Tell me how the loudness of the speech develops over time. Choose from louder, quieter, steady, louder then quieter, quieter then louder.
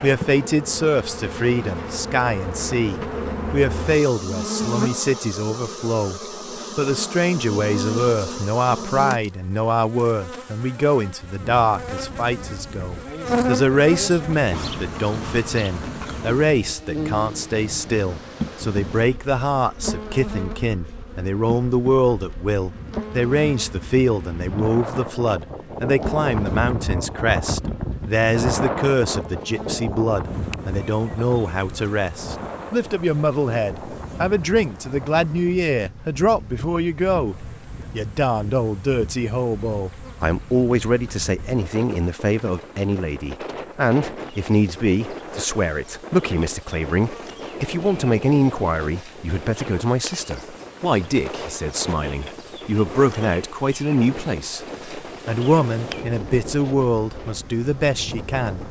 steady.